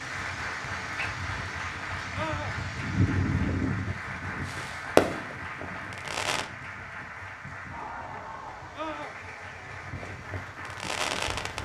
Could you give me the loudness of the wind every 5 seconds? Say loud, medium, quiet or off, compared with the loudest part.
loud, quiet, quiet.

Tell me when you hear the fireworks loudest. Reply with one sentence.
The volume of the fireworks peaks at 5 seconds.